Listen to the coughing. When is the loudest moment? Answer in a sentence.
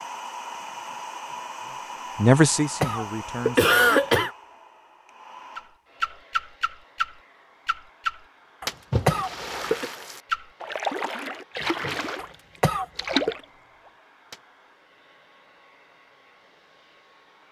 The loudest moment of the coughing is at 4 seconds.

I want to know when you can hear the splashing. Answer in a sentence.
You can hear the splashing from 5.5 to 13.4 s.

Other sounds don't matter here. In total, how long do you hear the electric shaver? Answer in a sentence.
The electric shaver can't be heard in this clip.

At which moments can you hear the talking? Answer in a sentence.
The talking can be heard from 1.6 to 3.8 s.